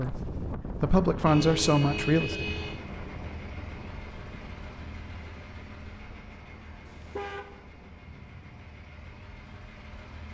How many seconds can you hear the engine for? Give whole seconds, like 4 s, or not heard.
8 s.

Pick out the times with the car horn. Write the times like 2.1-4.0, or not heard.
1.2-2.8, 6.8-7.5.